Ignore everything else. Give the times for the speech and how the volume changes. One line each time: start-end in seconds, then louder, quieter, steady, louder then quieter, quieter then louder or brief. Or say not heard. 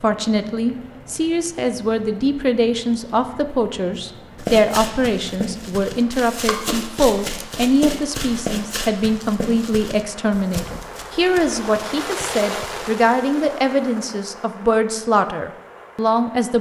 0.0-16.5 steady.